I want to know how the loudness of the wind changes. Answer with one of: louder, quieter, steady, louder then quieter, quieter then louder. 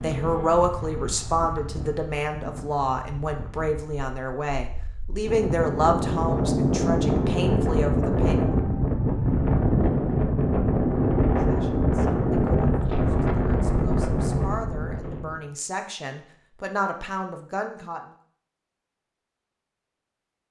louder.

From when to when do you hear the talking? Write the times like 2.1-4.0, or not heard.
0.0-8.4, 11.3-18.0.